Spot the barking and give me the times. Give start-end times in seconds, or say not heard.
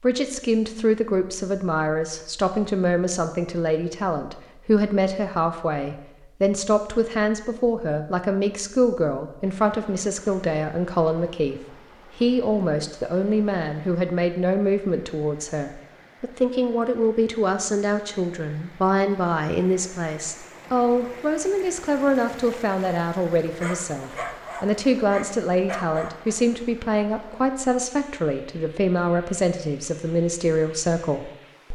23.6-26.4.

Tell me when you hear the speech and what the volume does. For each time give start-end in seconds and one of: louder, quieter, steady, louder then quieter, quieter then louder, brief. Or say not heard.
0.0-31.7 steady.